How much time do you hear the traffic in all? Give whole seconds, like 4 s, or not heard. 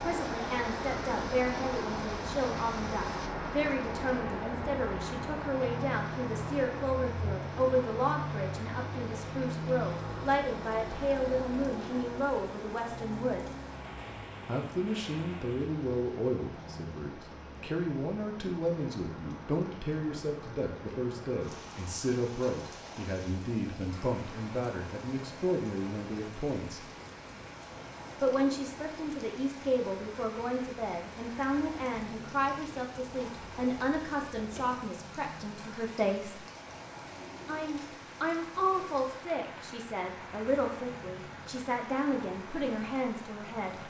44 s.